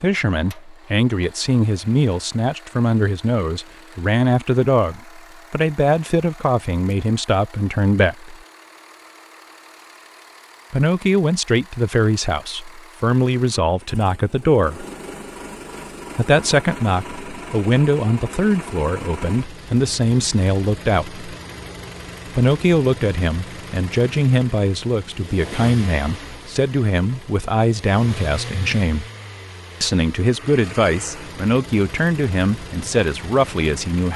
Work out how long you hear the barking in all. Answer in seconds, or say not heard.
not heard.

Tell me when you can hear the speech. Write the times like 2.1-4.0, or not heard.
0.0-8.3, 10.7-14.8, 16.1-21.2, 22.2-29.1, 29.8-34.1.